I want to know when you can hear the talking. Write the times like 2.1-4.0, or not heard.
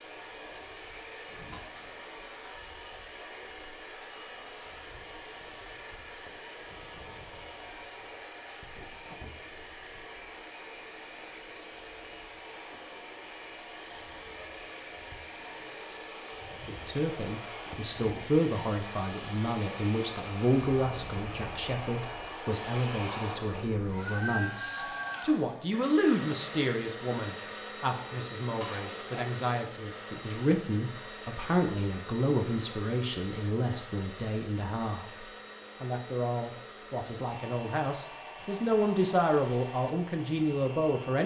16.6-41.2.